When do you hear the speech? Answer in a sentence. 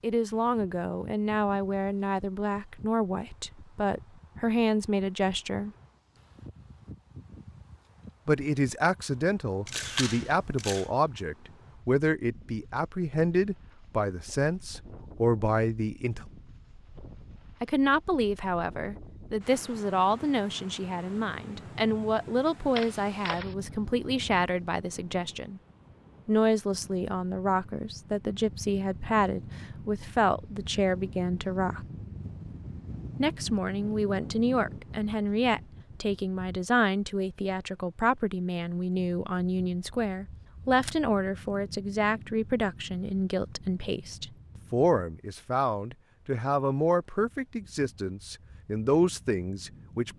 The speech can be heard from 0.0 to 5.7 s, from 8.2 to 16.2 s, from 17.6 to 25.6 s, from 26.2 to 31.9 s and from 33.2 to 50.1 s.